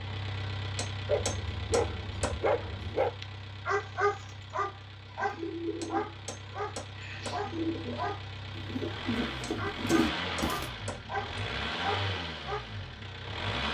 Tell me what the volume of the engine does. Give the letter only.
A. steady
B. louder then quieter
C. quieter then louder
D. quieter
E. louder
C.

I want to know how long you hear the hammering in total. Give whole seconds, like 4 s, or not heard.
5 s.